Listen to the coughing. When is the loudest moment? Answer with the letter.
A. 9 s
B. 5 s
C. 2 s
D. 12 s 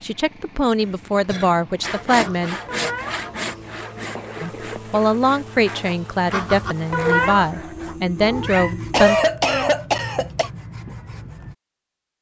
A.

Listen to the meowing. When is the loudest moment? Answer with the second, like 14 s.
7 s.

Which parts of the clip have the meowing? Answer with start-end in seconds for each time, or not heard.
2.1-3.8, 6.3-9.0.